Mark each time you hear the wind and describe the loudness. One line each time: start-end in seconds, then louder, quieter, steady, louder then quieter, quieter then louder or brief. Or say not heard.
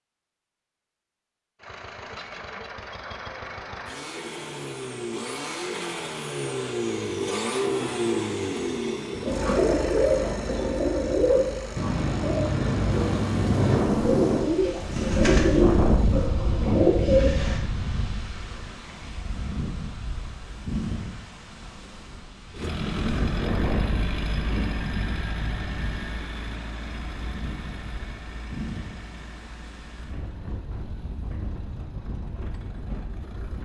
12.9-33.6 quieter.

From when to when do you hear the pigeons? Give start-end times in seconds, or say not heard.
9.2-17.6.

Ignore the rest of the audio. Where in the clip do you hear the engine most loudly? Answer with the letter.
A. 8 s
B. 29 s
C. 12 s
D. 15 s
A.